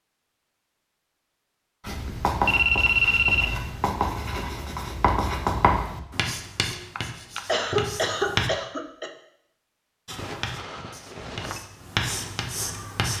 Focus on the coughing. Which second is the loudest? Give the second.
8 s.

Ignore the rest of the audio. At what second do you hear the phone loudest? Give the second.
3 s.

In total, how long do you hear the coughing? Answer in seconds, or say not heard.
2 s.